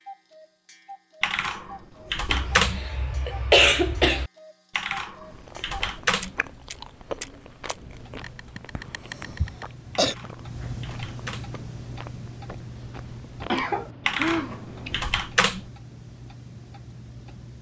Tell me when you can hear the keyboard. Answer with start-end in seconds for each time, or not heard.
1.2-2.9, 4.8-6.3, 9.9-11.6, 14.1-15.7.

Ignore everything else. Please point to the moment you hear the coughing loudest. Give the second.
4 s.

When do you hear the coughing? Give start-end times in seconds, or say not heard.
2.2-4.3, 8.2-10.2, 13.4-15.0.